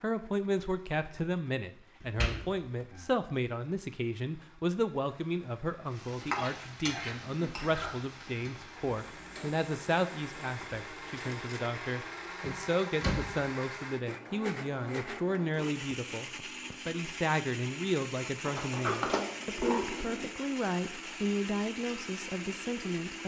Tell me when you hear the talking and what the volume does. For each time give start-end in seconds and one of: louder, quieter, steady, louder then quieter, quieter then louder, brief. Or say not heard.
0.0-23.2 steady.